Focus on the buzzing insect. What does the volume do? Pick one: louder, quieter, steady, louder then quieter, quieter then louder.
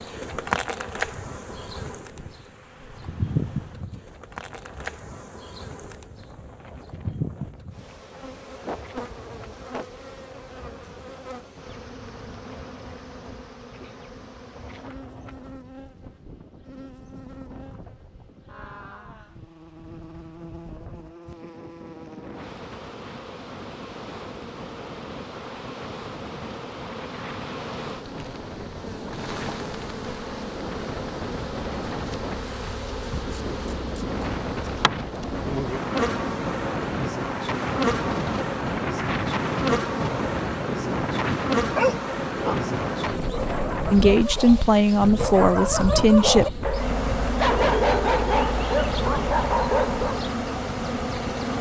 quieter then louder.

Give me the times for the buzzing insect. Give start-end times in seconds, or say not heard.
0.0-51.5.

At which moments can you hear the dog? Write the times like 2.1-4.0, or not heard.
41.6-50.3.